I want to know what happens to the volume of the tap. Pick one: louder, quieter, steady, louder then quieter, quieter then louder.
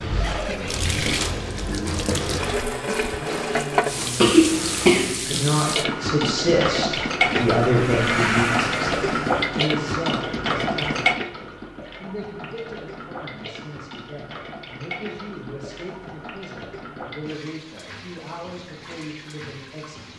quieter.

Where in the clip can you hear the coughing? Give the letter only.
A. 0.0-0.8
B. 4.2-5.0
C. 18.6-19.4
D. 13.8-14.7
B.